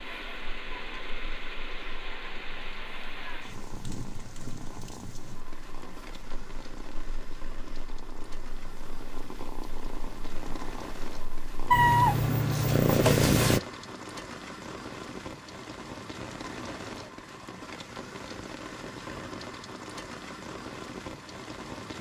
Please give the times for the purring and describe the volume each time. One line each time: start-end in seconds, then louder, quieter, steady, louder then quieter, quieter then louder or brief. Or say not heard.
0.1-13.6 louder.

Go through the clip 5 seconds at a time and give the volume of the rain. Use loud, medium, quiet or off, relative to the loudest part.
loud, medium, loud, loud, loud.